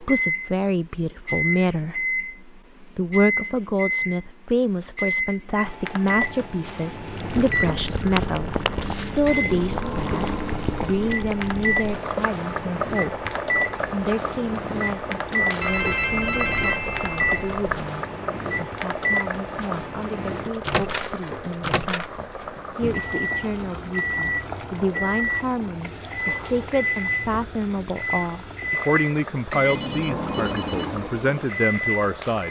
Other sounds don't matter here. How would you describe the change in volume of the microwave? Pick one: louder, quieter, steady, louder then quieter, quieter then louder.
steady.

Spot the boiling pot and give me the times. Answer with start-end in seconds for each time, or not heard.
7.0-32.4.